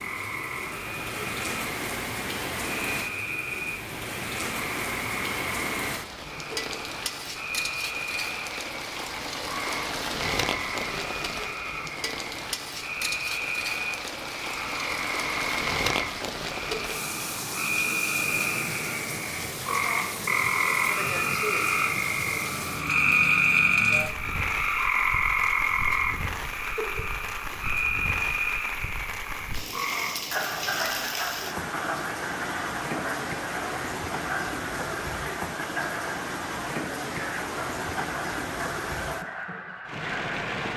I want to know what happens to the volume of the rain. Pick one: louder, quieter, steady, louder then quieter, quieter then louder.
steady.